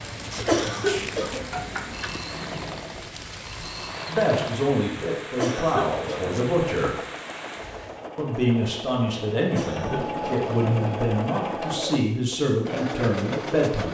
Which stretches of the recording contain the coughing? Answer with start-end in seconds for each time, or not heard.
0.5-2.1, 5.3-6.2, 9.5-10.4.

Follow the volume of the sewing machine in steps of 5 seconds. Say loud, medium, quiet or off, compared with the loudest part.
medium, medium, loud.